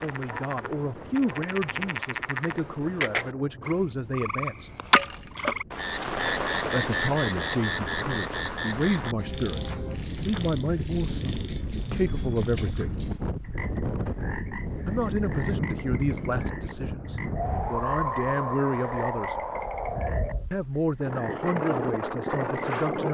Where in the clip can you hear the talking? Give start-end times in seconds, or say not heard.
0.0-4.7, 6.7-13.0, 14.8-19.4, 20.5-23.0.